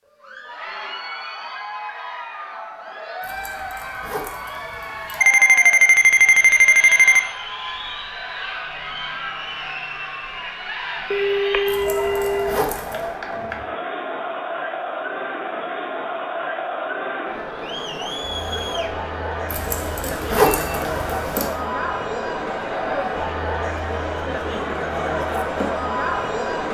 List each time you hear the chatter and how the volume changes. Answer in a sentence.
You can hear the chatter from 0.1 to 26.6 s, getting louder.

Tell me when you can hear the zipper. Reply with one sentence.
You can hear the zipper from 3.2 to 5.2 s, from 11.7 to 13.1 s and from 19.5 to 21.5 s.